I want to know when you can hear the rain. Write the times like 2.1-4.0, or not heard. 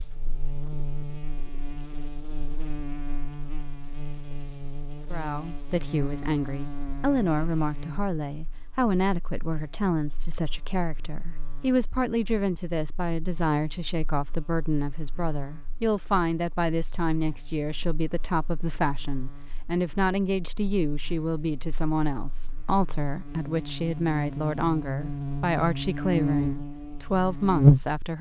not heard.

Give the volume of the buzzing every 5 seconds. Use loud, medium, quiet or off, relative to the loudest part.
quiet, quiet, quiet, quiet, quiet, loud.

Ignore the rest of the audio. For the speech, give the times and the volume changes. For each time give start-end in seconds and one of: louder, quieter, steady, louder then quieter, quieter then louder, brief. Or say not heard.
5.1-28.1 steady.